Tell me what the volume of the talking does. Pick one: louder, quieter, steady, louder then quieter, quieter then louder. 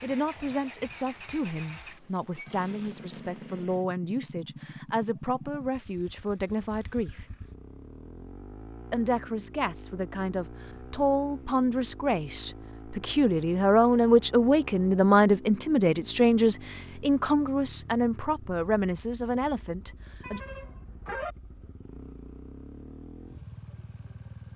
louder then quieter.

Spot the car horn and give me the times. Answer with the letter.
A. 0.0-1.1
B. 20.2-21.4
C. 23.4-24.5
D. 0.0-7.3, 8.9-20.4
B.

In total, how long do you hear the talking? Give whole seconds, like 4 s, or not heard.
19 s.